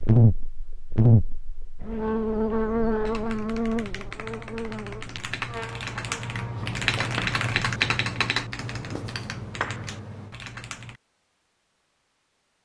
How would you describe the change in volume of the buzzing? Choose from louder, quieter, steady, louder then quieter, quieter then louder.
quieter.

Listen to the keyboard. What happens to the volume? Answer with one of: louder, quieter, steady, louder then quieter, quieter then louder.
louder then quieter.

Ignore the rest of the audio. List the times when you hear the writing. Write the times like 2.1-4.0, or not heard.
6.5-10.3.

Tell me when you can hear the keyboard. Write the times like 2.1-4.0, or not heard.
3.0-11.0.